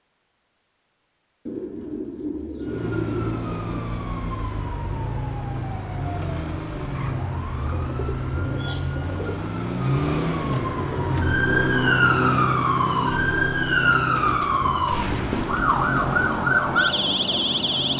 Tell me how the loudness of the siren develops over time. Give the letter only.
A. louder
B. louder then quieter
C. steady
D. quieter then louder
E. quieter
A.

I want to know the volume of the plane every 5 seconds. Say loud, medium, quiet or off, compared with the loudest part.
off, off, loud, loud.